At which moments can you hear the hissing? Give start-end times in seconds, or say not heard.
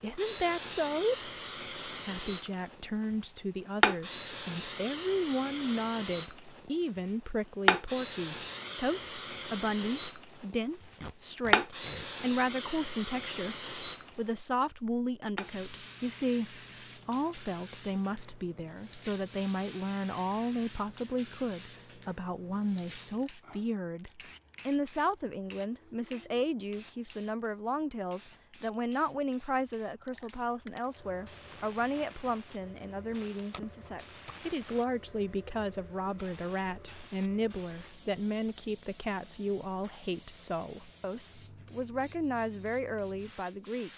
0.1-2.9, 3.8-6.7, 7.7-10.6, 11.5-14.4, 15.3-43.9.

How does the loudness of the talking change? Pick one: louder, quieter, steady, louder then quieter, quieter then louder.
steady.